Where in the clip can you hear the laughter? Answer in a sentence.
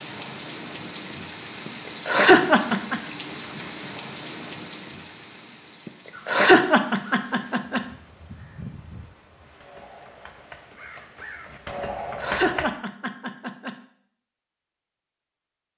You can hear the laughter from 1.6 to 3.0 s, from 5.8 to 7.8 s and from 11.8 to 13.8 s.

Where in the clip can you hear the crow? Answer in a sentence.
The crow can be heard from 6.1 to 12.7 s.